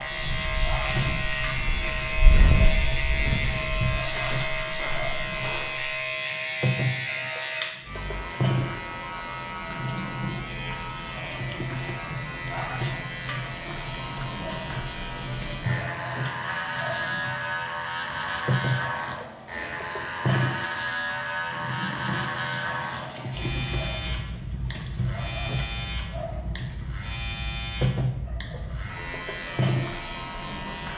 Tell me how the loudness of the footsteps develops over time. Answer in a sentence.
The loudness of the footsteps goes up, then down.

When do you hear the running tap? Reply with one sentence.
The running tap can be heard from 0.0 to 30.6 s.